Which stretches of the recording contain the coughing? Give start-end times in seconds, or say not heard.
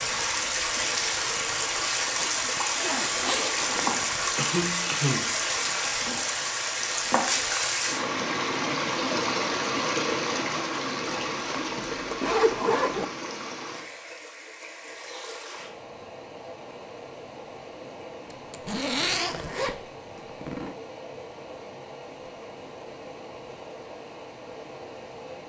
4.3-5.3.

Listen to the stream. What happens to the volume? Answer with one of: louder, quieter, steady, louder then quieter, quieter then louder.
quieter.